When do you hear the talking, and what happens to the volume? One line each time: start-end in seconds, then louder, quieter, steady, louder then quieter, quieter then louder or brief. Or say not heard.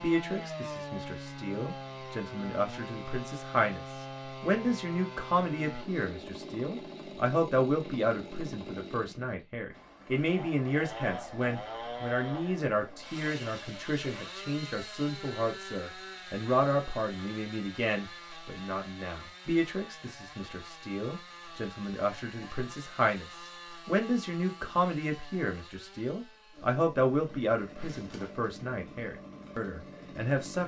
0.0-30.6 steady.